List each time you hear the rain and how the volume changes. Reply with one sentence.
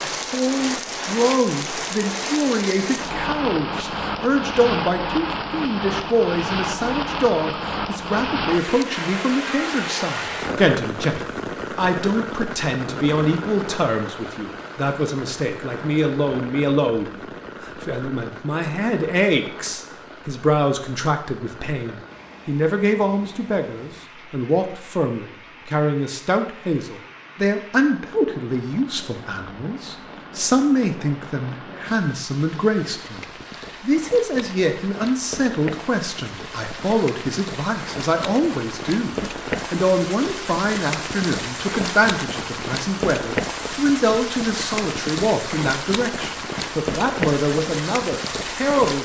You can hear the rain from 0.0 to 48.9 s, getting quieter then louder.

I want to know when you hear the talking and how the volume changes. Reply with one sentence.
You can hear the talking from 0.0 to 48.9 s, at a steady volume.